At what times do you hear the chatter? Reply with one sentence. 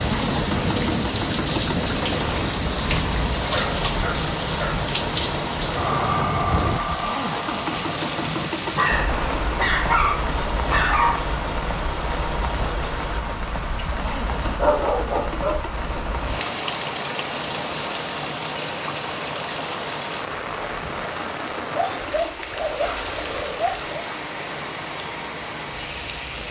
The chatter can't be heard in this clip.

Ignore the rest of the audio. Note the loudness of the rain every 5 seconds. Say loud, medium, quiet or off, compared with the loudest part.
loud, loud, medium, medium, medium, medium.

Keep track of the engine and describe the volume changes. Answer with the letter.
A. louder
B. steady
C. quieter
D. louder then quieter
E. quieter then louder
C.